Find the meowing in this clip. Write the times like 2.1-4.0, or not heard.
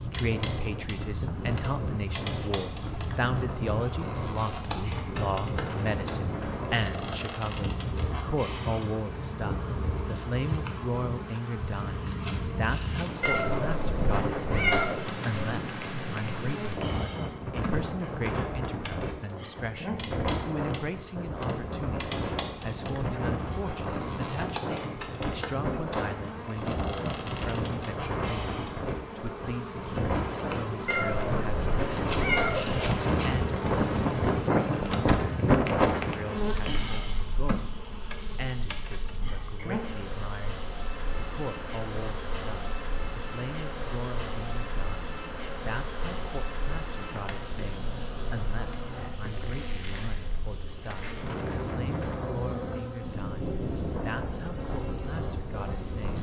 13.2-14.9, 30.9-32.9.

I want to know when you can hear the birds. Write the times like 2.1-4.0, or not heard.
not heard.